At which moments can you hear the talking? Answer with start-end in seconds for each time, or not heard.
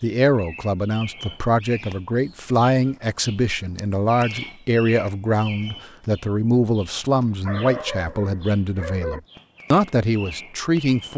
0.0-11.1.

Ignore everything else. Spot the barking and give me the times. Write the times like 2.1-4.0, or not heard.
7.5-9.2.